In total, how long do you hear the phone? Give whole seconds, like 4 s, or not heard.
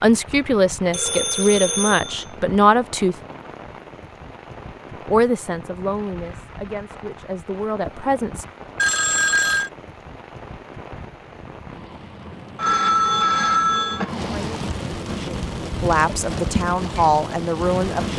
4 s.